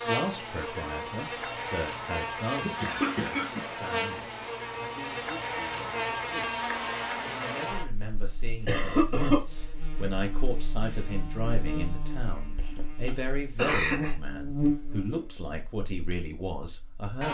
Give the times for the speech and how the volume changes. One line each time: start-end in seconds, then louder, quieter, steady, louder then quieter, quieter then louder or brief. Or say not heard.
0.0-17.2 quieter then louder.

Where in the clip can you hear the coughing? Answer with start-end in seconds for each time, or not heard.
2.5-3.6, 8.7-9.4, 12.3-14.2.